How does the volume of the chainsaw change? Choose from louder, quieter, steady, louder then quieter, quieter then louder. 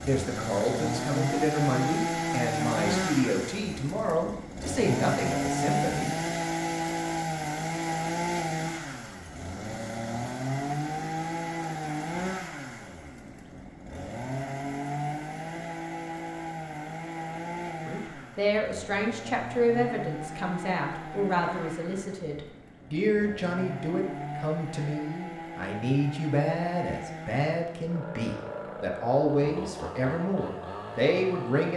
quieter.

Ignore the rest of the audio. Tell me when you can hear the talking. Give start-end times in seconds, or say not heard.
0.0-6.2, 17.9-31.7.